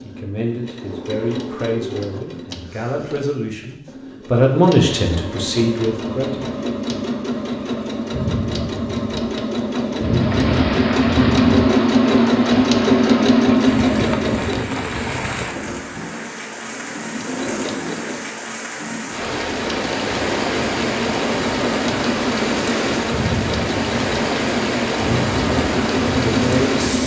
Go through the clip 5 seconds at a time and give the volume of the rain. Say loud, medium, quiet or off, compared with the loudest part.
off, off, medium, medium, loud, loud.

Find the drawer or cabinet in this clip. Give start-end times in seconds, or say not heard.
not heard.